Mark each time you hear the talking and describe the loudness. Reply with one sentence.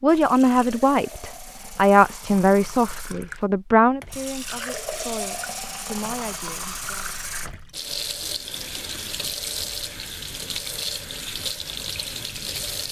You can hear the talking from 0.0 to 7.1 s, getting quieter.